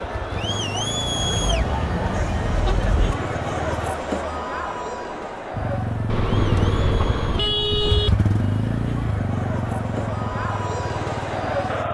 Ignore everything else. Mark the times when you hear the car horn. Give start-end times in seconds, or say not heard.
1.1-3.1, 6.0-8.1.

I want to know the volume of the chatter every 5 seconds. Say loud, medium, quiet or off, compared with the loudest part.
loud, medium, loud.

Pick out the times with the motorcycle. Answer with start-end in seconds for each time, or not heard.
0.0-4.0, 5.5-11.8.